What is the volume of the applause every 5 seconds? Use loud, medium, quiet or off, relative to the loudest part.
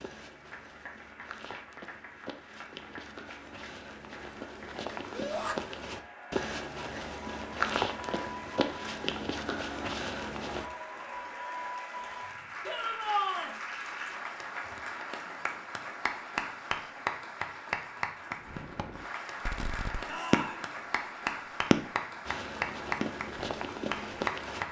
quiet, medium, loud, loud, loud.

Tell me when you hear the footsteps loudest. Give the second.
8 s.